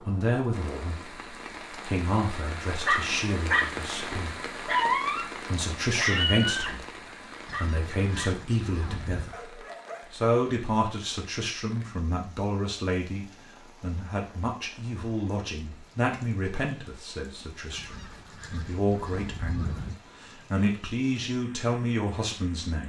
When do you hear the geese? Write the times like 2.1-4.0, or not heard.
7.5-9.3, 17.8-20.0.